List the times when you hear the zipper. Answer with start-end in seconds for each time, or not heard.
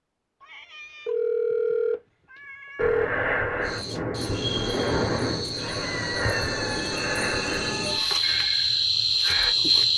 not heard.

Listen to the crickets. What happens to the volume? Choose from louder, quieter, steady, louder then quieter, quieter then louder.
louder.